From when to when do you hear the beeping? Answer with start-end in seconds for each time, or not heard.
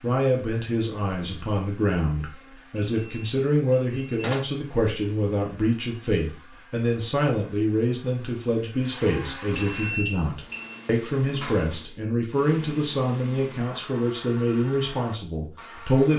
2.9-4.4, 9.6-10.8.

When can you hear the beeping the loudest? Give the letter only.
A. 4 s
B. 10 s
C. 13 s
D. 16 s
B.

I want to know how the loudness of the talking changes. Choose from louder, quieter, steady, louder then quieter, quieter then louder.
steady.